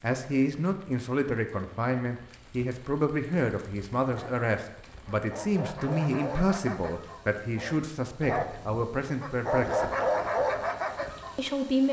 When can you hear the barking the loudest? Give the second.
10 s.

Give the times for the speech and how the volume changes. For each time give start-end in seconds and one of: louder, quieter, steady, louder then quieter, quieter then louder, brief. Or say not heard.
0.0-9.9 steady
11.3-11.8 brief.